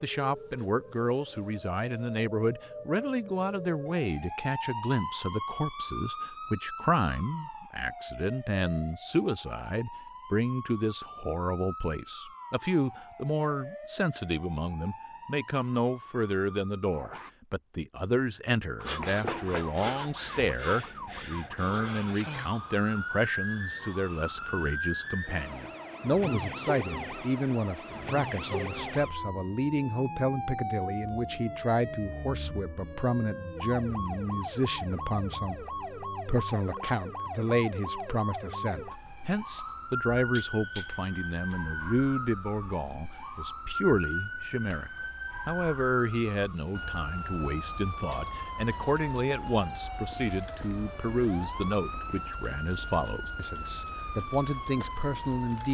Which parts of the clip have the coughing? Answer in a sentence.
You can't hear the coughing here.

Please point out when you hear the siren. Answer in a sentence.
The siren can be heard from 0.0 to 17.3 s and from 18.8 to 55.7 s.